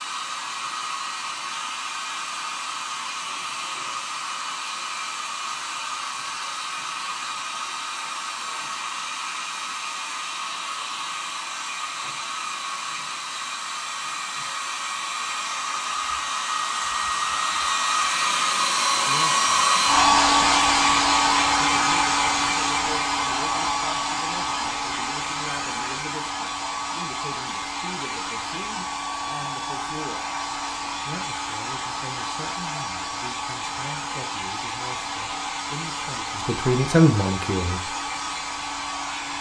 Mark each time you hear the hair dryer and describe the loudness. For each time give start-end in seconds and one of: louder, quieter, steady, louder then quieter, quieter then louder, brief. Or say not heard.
0.0-39.3 louder then quieter.